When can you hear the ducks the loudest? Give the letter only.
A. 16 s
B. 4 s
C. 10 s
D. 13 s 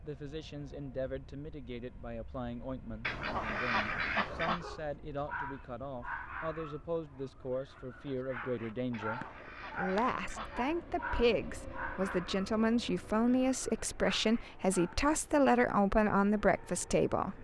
B.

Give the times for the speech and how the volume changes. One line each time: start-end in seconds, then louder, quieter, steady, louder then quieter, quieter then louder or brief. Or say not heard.
0.0-17.3 louder.